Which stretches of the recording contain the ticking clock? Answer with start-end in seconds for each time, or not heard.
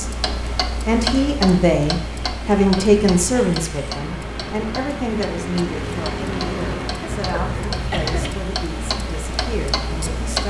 0.0-10.4.